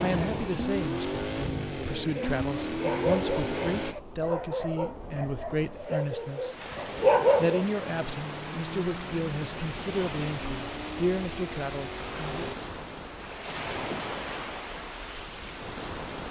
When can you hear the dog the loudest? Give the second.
7 s.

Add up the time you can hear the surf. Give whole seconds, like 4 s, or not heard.
16 s.